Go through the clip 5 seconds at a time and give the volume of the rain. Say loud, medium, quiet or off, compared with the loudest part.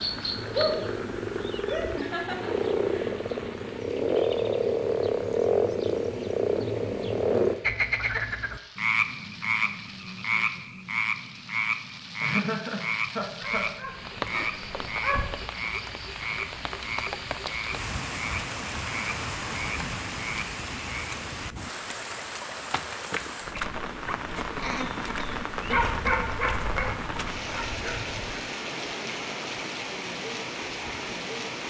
medium, quiet, medium, loud, loud, loud, loud.